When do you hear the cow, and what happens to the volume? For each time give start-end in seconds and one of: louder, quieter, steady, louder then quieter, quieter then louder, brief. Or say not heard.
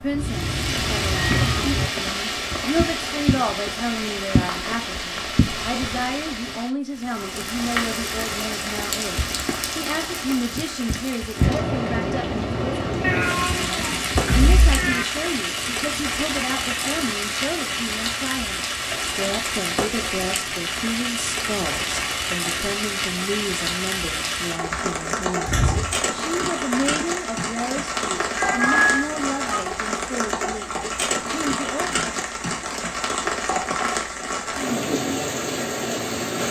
not heard.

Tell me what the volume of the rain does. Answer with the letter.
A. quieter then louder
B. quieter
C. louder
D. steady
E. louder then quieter
D.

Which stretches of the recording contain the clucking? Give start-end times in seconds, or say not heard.
not heard.